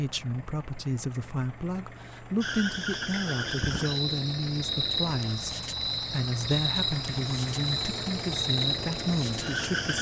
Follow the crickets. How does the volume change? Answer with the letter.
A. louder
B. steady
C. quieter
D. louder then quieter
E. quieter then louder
B.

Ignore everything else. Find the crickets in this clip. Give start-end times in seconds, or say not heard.
2.4-9.9.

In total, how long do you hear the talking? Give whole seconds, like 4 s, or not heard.
10 s.